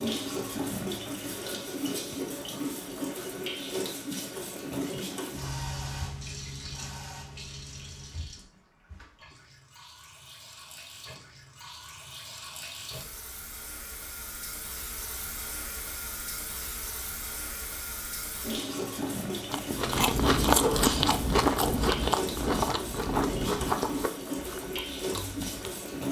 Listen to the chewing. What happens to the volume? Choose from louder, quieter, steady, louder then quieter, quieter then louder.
quieter.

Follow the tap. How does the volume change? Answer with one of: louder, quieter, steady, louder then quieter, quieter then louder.
quieter then louder.